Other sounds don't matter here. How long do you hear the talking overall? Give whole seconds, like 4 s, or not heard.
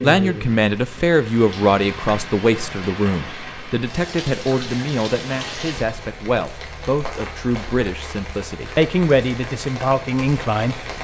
11 s.